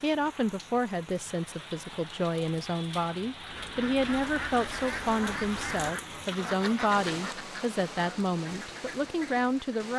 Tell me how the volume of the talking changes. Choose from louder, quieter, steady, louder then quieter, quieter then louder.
steady.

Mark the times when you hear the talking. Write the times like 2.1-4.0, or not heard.
0.0-9.9.